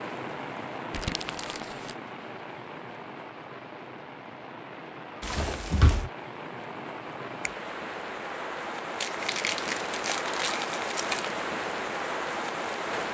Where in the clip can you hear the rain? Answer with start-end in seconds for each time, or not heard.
0.0-13.0.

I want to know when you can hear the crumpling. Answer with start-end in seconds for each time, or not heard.
0.9-1.9, 5.2-6.1, 9.0-11.3.